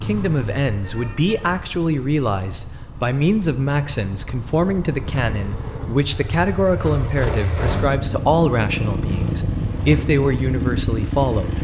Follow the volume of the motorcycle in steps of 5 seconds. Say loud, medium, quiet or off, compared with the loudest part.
medium, loud, loud.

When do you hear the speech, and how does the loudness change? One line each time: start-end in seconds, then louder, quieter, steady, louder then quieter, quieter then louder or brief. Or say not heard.
0.0-11.5 steady.